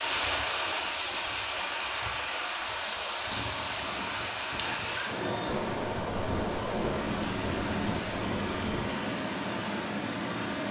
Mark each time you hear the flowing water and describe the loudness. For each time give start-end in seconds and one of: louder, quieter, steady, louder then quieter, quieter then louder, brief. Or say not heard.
0.0-10.6 steady.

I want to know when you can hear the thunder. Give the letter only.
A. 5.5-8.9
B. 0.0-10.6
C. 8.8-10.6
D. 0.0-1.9
A.